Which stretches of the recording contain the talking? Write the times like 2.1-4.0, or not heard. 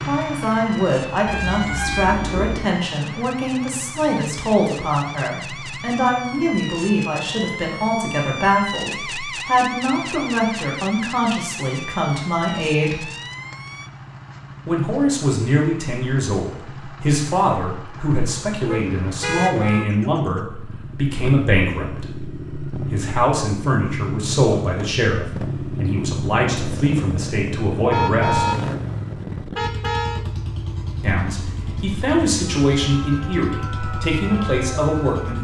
0.0-13.1, 14.7-28.6, 31.0-35.3.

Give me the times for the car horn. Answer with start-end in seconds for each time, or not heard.
1.2-2.6, 18.6-19.9, 27.9-28.6, 29.6-30.2.